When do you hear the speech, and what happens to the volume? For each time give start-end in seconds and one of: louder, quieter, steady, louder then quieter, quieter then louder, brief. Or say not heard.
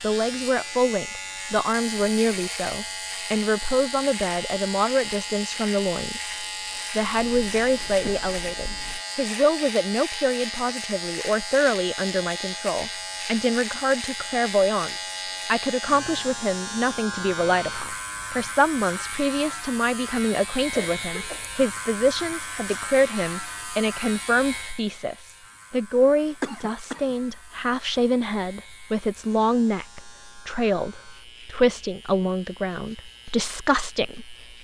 0.0-34.4 steady.